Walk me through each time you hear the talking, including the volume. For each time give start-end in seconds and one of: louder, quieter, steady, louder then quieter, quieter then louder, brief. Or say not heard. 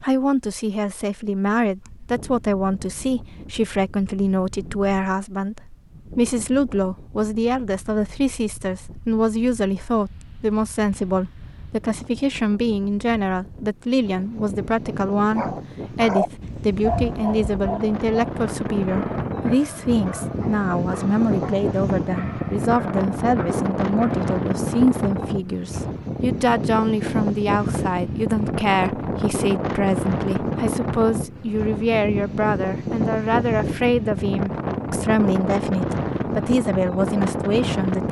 0.0-38.0 steady.